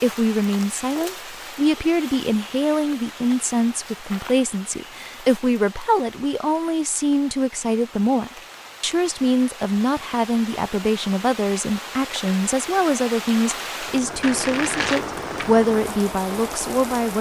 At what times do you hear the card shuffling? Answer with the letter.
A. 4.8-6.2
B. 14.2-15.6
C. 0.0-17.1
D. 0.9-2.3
B.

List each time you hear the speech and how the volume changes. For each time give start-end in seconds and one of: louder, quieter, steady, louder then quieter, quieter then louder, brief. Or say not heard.
0.0-17.1 steady.